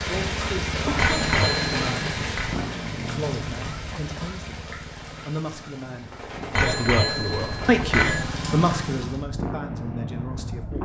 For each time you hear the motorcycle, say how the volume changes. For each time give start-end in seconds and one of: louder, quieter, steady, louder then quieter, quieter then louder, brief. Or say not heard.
0.0-10.7 quieter then louder.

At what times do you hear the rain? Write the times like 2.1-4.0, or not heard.
0.0-9.2.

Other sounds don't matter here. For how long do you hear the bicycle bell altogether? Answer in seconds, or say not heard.
3 s.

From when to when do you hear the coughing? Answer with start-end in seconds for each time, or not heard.
0.8-1.4.